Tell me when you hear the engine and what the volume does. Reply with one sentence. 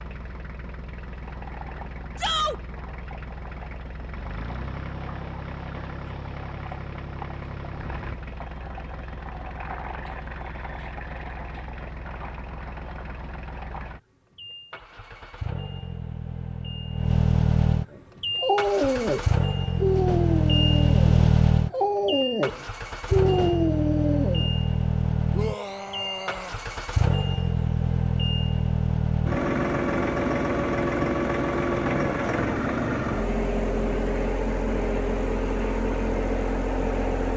You can hear the engine from 0.0 to 37.3 s, getting louder.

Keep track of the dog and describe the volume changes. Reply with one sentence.
The loudness of the dog goes down, then up.